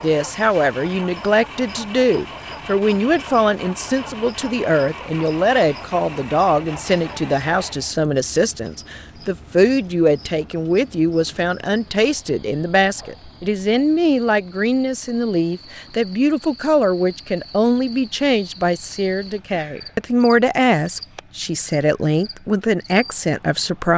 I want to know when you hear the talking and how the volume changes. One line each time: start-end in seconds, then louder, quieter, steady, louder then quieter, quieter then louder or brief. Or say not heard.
0.0-23.9 steady.